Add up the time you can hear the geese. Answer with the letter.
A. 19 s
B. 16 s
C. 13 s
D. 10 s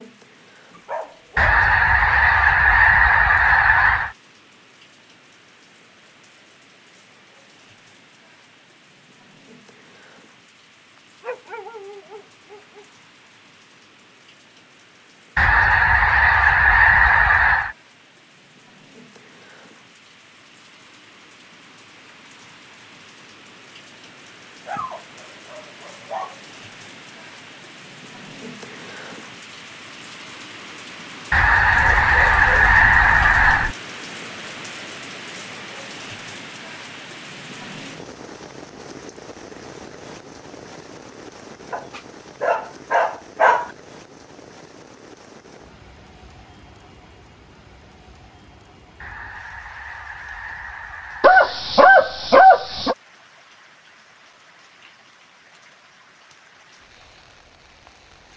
D.